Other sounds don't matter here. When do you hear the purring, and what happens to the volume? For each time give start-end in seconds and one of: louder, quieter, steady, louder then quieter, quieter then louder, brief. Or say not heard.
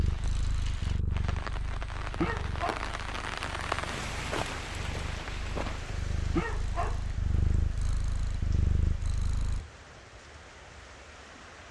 0.0-9.7 quieter then louder.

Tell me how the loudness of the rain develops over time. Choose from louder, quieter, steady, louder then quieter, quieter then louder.
louder then quieter.